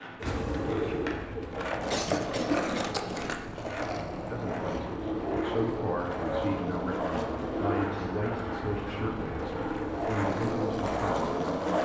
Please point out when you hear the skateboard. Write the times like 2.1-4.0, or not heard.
0.0-11.8.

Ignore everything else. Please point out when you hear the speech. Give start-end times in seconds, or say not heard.
4.2-11.8.